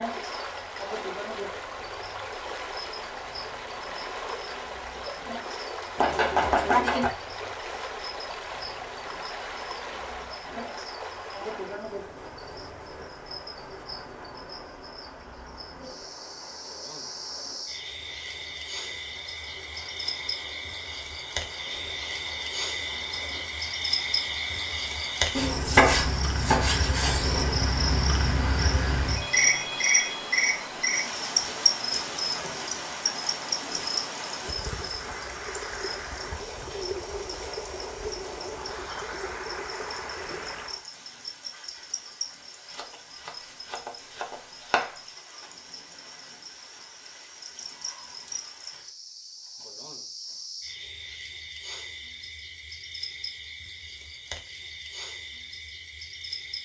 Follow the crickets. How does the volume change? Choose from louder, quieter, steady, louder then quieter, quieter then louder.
louder then quieter.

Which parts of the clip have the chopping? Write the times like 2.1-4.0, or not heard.
6.0-7.1, 25.4-27.4, 42.7-45.0.